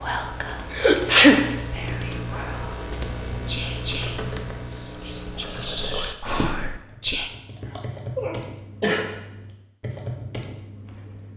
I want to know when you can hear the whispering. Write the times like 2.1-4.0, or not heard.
0.0-7.3.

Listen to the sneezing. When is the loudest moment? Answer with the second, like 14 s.
1 s.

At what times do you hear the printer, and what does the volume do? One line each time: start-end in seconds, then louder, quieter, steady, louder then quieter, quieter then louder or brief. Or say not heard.
not heard.